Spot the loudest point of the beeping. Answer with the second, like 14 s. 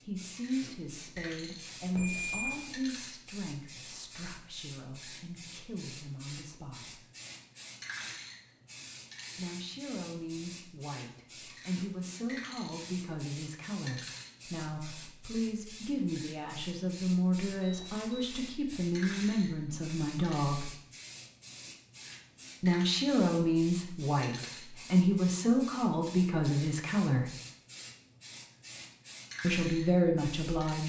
2 s.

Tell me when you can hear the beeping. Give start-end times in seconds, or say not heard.
1.9-2.6, 17.6-18.4.